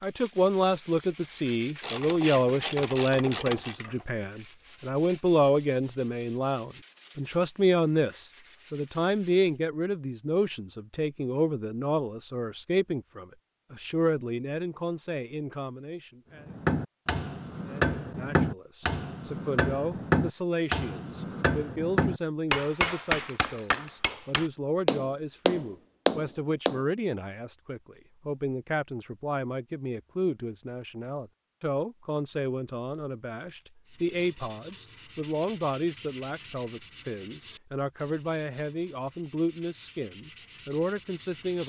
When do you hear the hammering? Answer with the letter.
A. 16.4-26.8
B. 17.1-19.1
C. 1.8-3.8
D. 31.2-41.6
A.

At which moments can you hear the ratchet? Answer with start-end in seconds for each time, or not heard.
1.8-3.8.